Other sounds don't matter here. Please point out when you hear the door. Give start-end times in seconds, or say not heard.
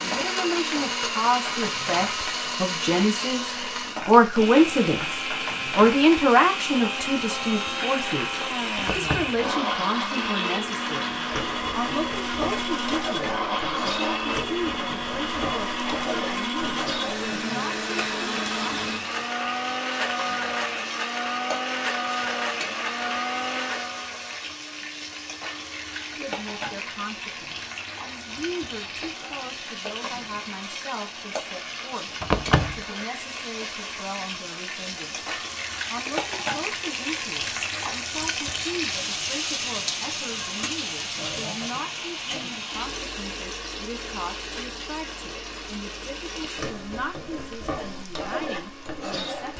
8.8-9.4, 32.2-32.8.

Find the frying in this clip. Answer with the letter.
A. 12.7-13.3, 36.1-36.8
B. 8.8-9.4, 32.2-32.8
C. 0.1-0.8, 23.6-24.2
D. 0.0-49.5
D.